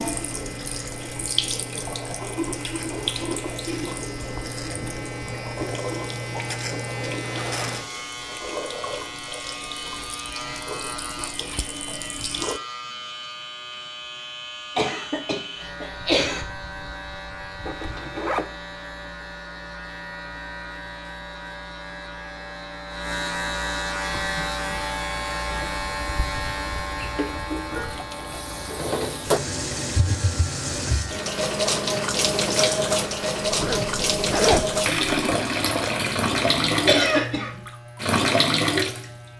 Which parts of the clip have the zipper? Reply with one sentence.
You can hear the zipper from 7.2 to 7.9 s, from 17.6 to 18.6 s and from 33.5 to 34.7 s.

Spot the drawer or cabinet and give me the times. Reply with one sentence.
You can't hear the drawer or cabinet here.